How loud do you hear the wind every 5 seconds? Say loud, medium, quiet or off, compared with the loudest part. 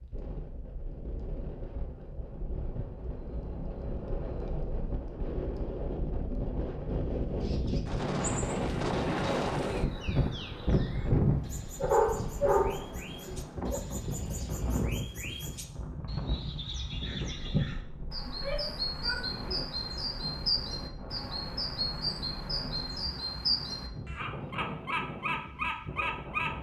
medium, loud, loud, medium, medium, medium.